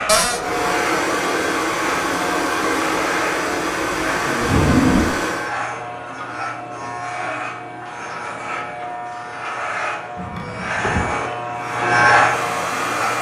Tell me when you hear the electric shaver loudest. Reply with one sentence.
The volume of the electric shaver peaks at 12 seconds.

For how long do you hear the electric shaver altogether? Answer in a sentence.
The electric shaver can be heard for 13 seconds in total.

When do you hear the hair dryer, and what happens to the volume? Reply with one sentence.
The hair dryer can be heard from 0.0 to 5.5 s, at a steady volume; and briefly from 11.6 to 13.1 s.